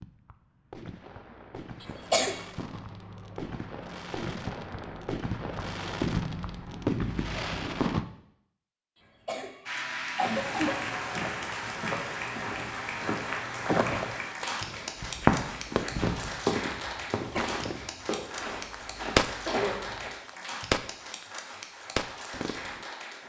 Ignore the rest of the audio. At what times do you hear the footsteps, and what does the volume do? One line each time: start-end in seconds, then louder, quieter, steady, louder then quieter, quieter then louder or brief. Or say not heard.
10.2-20.1 louder then quieter.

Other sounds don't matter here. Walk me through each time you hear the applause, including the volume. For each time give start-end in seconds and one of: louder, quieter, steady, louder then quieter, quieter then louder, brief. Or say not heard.
9.7-23.2 quieter.